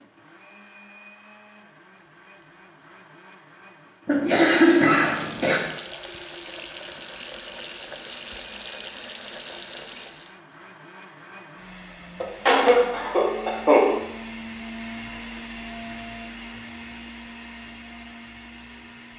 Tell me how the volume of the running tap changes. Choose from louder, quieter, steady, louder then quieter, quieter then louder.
steady.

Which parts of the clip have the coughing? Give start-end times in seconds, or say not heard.
4.0-5.6, 12.2-13.9.